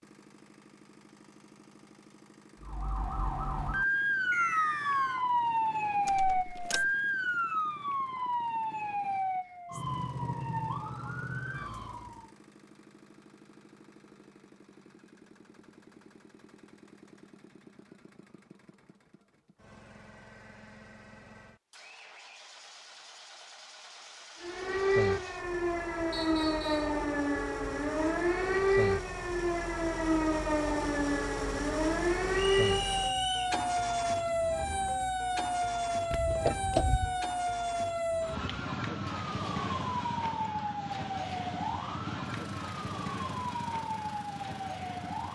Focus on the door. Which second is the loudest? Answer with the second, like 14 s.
37 s.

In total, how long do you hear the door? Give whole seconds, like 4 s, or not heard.
2 s.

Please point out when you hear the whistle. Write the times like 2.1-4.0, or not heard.
4.3-5.2, 26.1-26.9, 32.5-33.5.